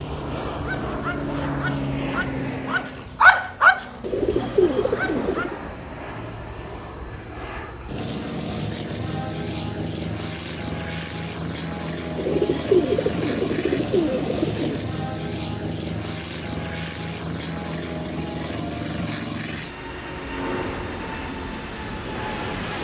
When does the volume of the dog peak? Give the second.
3 s.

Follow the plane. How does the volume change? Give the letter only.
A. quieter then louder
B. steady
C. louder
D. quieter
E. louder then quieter
B.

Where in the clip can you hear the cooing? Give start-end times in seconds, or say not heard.
4.0-5.6, 12.2-14.8.